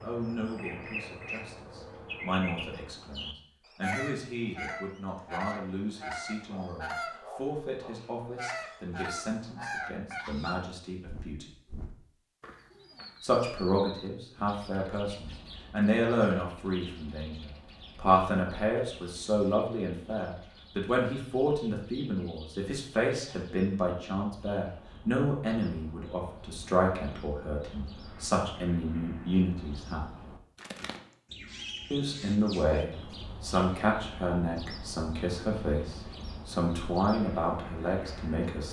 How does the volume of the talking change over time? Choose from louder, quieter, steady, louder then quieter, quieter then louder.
louder.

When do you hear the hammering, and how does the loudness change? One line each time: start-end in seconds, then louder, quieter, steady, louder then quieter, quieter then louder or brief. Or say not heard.
not heard.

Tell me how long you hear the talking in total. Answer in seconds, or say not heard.
35 s.